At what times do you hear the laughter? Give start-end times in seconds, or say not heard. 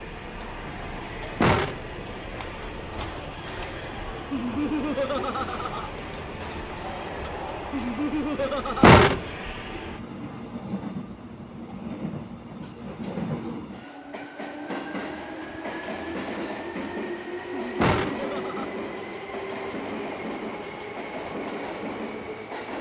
4.3-5.9, 7.7-9.0, 17.5-18.7.